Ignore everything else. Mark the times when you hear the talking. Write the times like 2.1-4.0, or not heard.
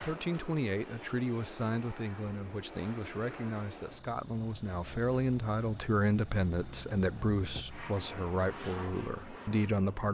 0.0-10.0.